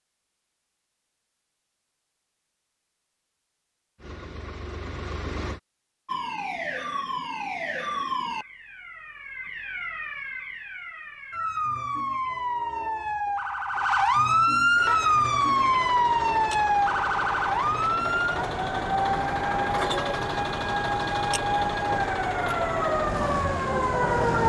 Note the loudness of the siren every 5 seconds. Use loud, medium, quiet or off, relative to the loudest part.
off, medium, loud, loud, loud.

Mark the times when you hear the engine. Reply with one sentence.
You can hear the engine from 4.0 to 5.6 s and from 14.8 to 24.4 s.